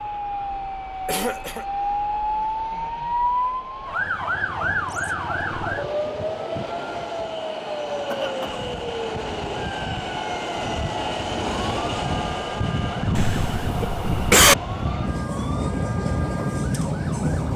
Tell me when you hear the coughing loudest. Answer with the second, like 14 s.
14 s.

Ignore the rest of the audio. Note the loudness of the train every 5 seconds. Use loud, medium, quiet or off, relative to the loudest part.
quiet, medium, loud, loud.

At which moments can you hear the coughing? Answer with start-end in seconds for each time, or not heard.
1.1-1.6, 8.1-8.5, 13.2-14.6.